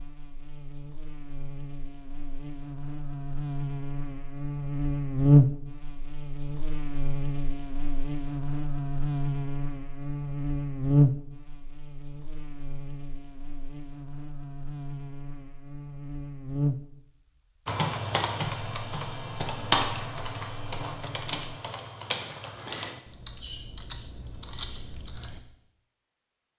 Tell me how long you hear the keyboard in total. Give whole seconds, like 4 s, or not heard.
8 s.